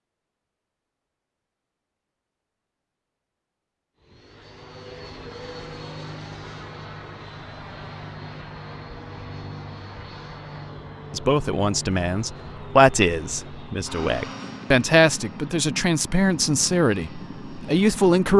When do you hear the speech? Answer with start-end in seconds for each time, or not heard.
11.1-18.3.